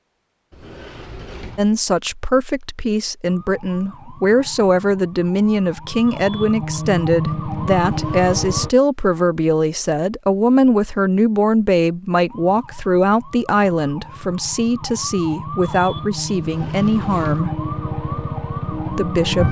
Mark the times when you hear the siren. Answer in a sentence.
The siren can be heard from 3.2 to 8.7 s and from 12.2 to 19.4 s.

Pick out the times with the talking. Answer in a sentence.
The talking can be heard from 1.6 to 17.5 s and from 18.9 to 19.4 s.